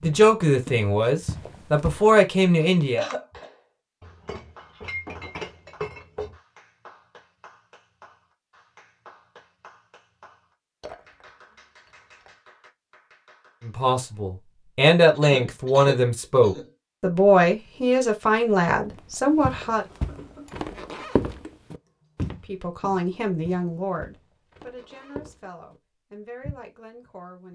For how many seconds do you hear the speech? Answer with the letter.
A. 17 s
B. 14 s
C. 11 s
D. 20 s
B.